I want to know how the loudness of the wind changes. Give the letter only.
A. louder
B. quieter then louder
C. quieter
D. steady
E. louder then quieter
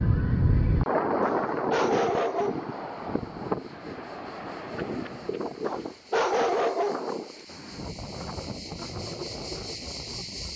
C.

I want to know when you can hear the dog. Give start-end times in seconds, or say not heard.
1.2-2.6, 5.7-7.0.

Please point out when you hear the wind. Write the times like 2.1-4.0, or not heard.
0.0-10.5.